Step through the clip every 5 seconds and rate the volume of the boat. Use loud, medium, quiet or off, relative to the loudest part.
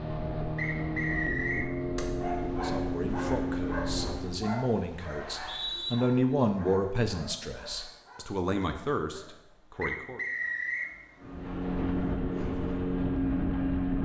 loud, off, loud.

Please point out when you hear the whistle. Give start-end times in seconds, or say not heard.
0.6-1.7, 5.2-6.0, 9.8-10.9.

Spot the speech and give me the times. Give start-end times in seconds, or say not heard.
2.6-10.2.